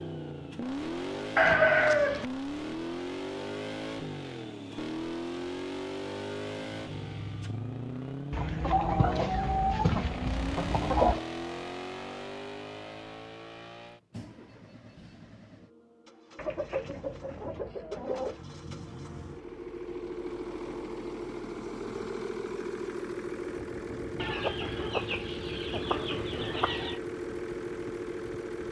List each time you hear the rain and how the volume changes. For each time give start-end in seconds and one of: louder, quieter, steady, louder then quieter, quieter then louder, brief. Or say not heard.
not heard.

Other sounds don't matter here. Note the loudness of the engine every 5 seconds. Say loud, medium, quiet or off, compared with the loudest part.
loud, loud, loud, medium, loud, loud.